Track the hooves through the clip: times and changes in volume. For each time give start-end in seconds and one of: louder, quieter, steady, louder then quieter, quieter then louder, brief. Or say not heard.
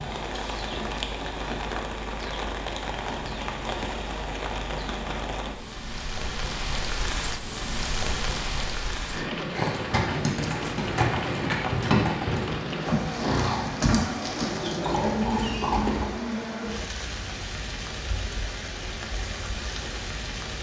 9.5-16.1 steady.